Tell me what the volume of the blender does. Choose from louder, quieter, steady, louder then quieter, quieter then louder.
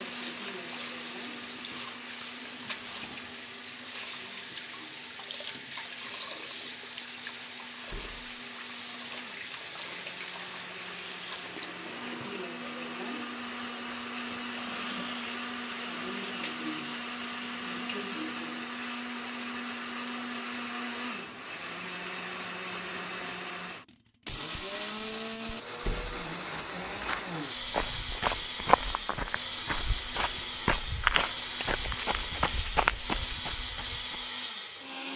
louder.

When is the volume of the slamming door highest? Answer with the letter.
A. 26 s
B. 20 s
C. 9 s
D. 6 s
A.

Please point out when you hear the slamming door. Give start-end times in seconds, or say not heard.
7.8-8.2, 25.8-26.3.